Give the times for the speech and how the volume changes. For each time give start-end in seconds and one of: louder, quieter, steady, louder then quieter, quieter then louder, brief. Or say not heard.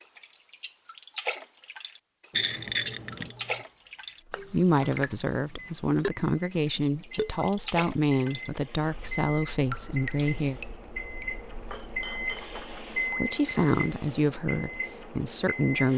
4.3-10.6 steady
13.0-15.9 brief.